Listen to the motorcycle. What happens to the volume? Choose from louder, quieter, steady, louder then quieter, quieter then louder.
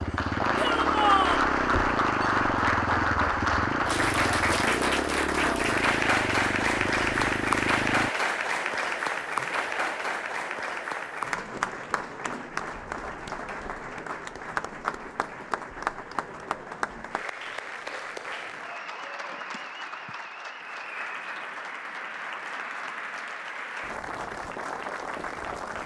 steady.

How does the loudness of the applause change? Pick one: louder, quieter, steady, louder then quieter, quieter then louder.
quieter.